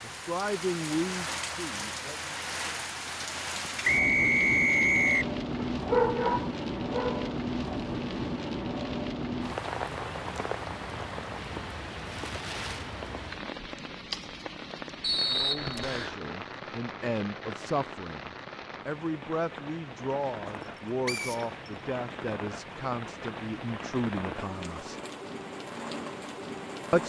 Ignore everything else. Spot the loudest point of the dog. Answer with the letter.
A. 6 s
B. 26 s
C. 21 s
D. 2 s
A.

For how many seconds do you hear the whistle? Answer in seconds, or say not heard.
3 s.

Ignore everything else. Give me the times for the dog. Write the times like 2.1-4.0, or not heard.
5.5-7.3.